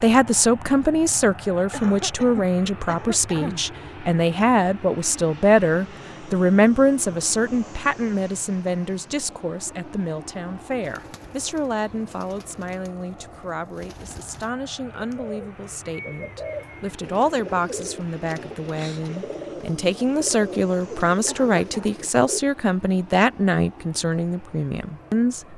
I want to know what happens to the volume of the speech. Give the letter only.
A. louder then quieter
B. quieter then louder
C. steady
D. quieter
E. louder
B.